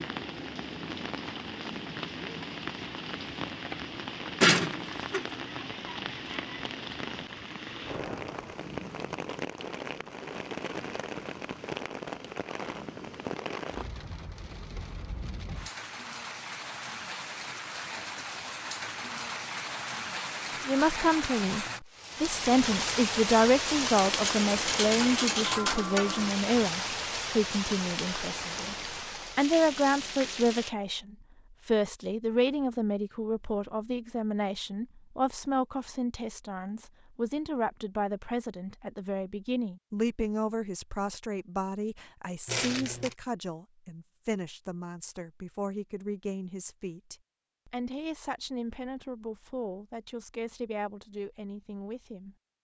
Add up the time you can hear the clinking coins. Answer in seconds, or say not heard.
4 s.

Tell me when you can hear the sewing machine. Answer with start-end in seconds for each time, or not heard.
not heard.